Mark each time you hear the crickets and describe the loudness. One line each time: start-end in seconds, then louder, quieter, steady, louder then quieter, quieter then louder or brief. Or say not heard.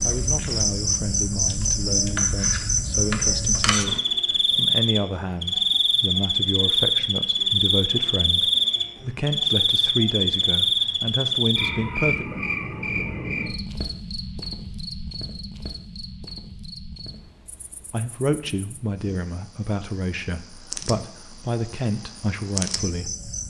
0.0-23.4 quieter.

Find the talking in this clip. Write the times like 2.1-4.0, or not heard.
0.0-12.2, 17.9-23.1.